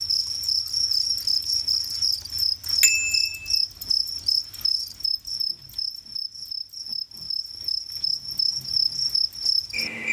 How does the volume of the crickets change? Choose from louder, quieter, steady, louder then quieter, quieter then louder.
quieter then louder.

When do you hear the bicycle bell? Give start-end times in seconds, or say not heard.
2.8-3.6.